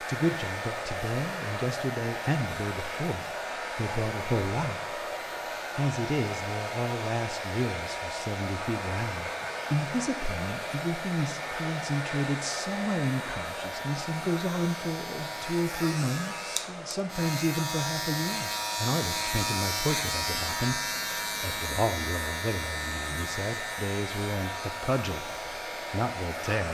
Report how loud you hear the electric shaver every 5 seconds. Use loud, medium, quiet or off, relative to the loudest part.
medium, medium, medium, loud, loud, medium.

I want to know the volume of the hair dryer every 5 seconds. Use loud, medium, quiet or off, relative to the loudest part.
loud, loud, loud, medium, medium, loud.